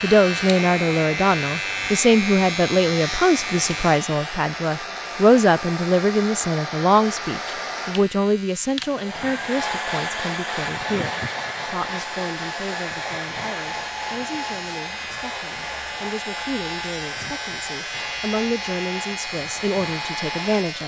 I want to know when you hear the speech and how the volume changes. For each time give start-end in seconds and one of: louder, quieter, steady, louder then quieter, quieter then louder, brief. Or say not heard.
0.0-20.8 quieter then louder.